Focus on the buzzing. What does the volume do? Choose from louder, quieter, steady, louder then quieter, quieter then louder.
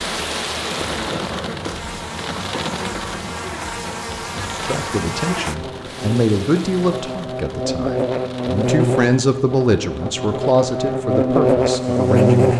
louder.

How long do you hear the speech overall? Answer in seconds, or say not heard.
8 s.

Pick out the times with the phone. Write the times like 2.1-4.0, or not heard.
not heard.